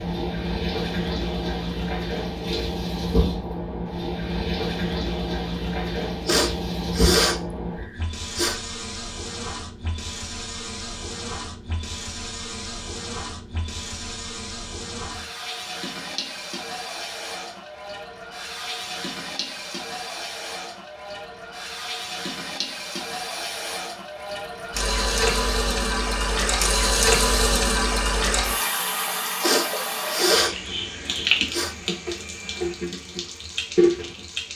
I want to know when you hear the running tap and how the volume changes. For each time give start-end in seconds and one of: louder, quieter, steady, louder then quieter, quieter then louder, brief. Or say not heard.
0.0-34.5 quieter then louder.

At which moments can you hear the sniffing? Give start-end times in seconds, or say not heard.
6.2-8.6, 29.4-31.8.